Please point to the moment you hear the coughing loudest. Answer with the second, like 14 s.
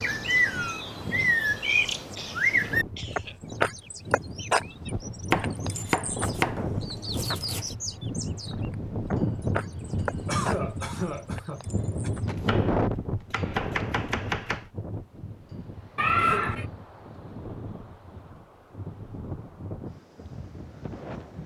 16 s.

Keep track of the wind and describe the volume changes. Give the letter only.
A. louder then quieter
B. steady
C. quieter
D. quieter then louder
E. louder
A.